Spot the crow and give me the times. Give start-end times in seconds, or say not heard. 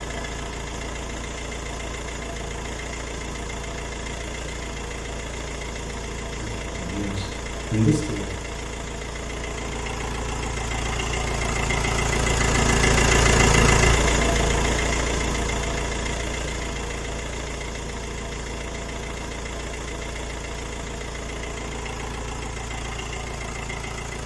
not heard.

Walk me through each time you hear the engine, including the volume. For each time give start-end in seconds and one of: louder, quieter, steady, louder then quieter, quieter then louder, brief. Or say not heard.
0.0-24.2 louder then quieter.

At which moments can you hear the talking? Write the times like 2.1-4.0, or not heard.
6.4-8.3.